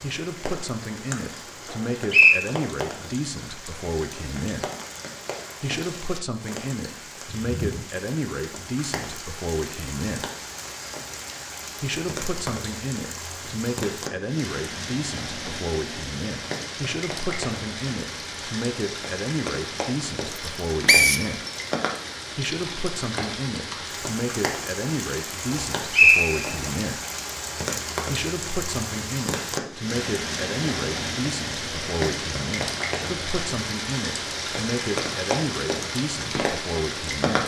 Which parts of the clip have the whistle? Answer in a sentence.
You can hear the whistle from 1.7 to 2.4 s, from 20.9 to 21.5 s and from 25.5 to 26.7 s.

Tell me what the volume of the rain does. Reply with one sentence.
The volume of the rain goes up.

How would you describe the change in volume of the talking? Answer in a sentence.
The volume of the talking stays about the same.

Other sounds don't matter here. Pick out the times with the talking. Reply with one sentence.
You can hear the talking from 0.0 to 4.7 s, from 5.6 to 10.2 s, from 11.8 to 21.4 s, from 22.4 to 27.0 s and from 28.1 to 37.4 s.